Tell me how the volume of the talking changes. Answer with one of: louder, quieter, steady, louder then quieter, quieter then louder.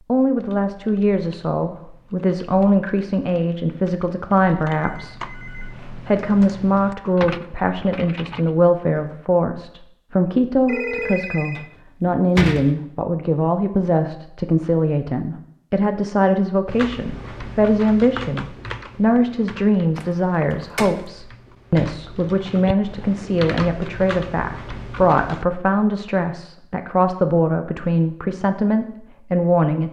steady.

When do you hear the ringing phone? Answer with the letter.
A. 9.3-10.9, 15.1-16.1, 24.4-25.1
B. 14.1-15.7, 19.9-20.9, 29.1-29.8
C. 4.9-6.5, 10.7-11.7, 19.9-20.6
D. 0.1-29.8
C.